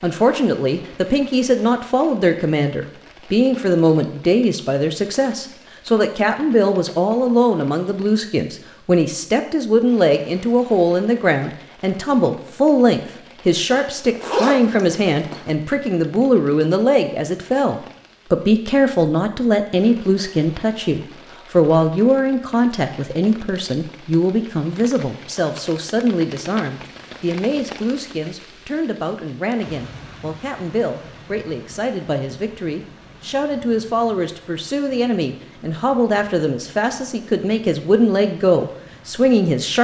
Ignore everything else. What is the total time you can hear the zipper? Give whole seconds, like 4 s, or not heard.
2 s.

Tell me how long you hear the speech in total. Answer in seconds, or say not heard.
40 s.